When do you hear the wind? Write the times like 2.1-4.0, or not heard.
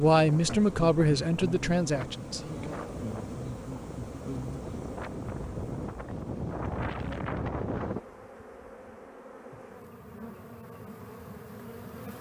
0.1-8.0.